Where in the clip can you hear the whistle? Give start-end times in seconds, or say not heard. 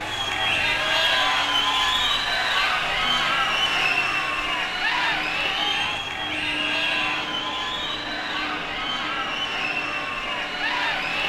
0.4-0.9, 5.7-7.3.